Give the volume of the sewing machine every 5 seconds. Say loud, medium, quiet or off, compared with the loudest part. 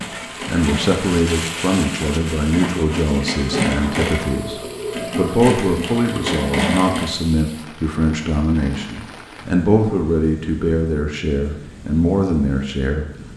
loud, loud, off.